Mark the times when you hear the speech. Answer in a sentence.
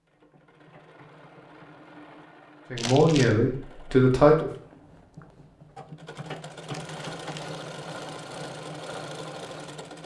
You can hear the speech from 2.7 to 4.5 s.